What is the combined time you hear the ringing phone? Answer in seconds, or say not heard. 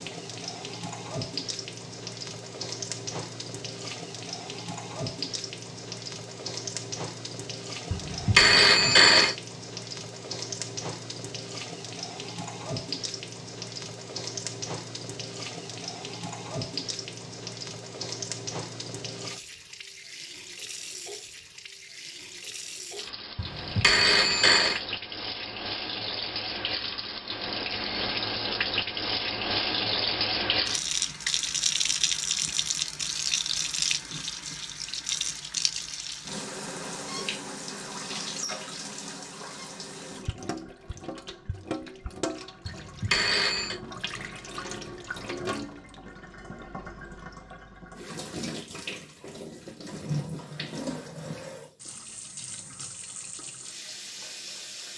4 s.